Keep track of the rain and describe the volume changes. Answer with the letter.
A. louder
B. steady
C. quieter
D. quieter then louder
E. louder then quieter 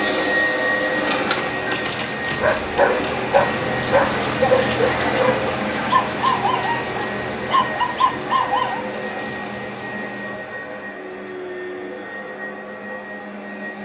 E.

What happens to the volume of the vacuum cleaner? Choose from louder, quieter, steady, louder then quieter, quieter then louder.
quieter.